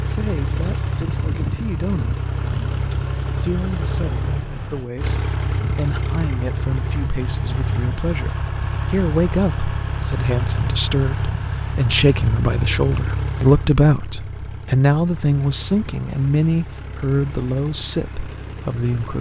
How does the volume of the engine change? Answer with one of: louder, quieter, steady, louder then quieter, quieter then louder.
quieter.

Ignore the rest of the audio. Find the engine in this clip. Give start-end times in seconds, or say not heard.
0.0-19.1.